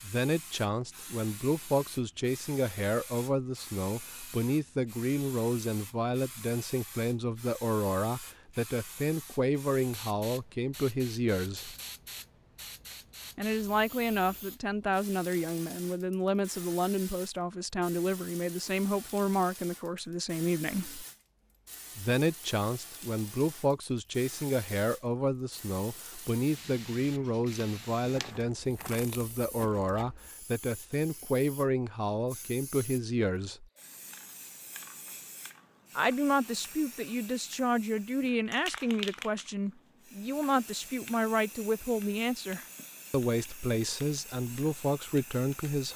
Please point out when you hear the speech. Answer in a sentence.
You can hear the speech from 0.0 to 11.8 s, from 13.3 to 21.1 s, from 21.9 to 33.6 s and from 36.0 to 45.9 s.